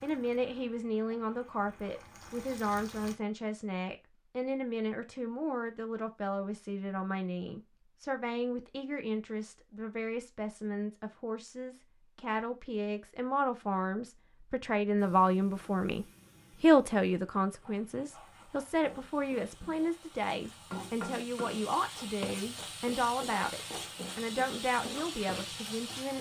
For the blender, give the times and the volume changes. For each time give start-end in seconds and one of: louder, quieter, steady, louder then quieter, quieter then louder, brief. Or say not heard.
not heard.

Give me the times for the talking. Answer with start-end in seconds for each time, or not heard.
0.0-26.1.